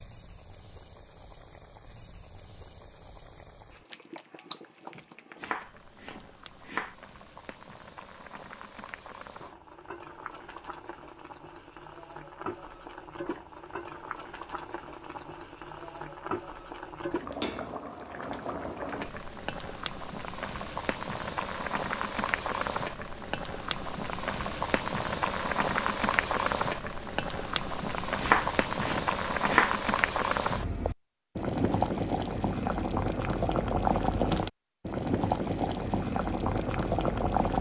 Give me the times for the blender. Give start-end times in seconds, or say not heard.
not heard.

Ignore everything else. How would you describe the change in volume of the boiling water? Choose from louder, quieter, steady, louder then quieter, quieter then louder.
louder.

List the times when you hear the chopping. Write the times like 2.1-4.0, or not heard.
5.3-7.0, 28.2-29.8.